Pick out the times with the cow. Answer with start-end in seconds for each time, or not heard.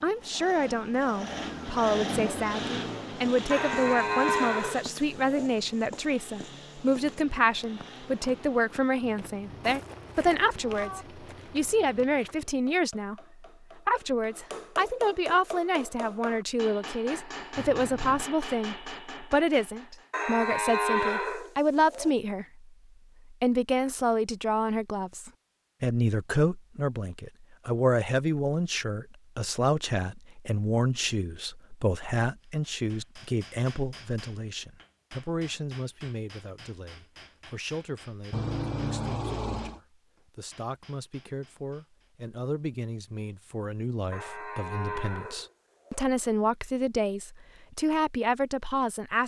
3.5-5.5, 20.1-22.1, 44.1-46.1.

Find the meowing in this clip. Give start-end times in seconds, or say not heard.
9.0-11.1, 17.6-18.3, 38.3-39.8.